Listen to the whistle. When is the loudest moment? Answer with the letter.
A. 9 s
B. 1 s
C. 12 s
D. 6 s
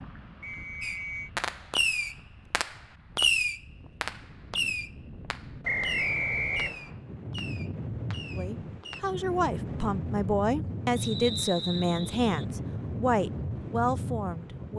D.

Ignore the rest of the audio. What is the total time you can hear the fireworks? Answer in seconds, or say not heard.
8 s.